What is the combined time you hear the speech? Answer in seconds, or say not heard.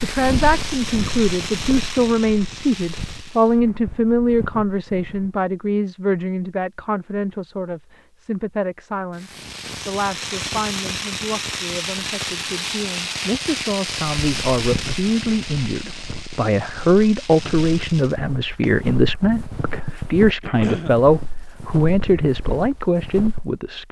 24 s.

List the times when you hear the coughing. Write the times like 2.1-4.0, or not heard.
20.4-20.9.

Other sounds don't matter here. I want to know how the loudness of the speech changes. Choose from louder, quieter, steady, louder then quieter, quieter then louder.
quieter then louder.